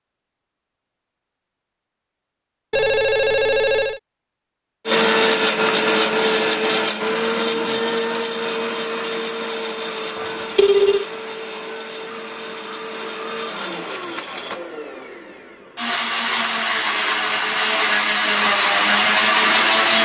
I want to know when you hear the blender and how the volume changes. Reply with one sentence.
The blender can be heard from 4.8 to 20.0 s, getting quieter then louder.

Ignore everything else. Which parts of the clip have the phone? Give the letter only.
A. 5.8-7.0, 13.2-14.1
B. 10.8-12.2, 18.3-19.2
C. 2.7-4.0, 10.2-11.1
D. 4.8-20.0
C.